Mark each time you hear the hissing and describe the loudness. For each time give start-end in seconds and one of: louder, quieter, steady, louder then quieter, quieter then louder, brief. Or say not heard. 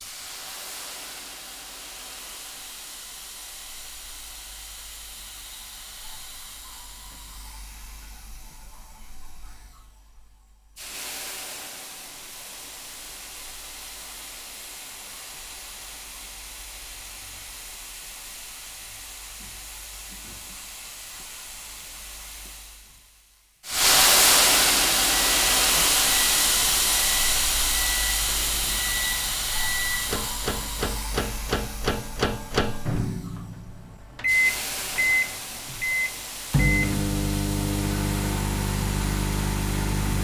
0.0-40.1 louder then quieter.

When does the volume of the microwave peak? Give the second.
35 s.